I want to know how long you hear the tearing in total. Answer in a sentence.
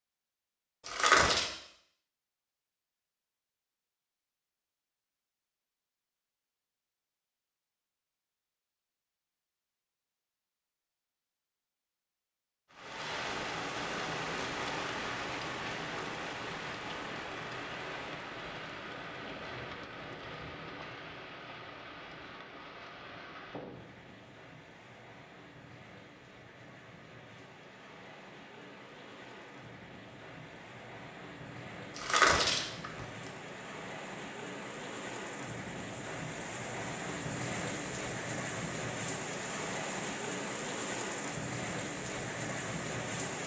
The tearing can be heard for 2 seconds in total.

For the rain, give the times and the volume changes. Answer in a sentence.
You can hear the rain from 12.7 to 43.4 s, getting quieter then louder.